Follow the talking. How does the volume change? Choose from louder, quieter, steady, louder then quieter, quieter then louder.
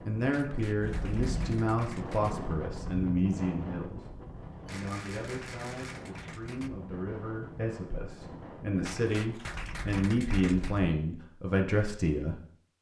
quieter then louder.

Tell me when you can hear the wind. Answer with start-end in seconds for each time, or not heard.
0.0-9.4.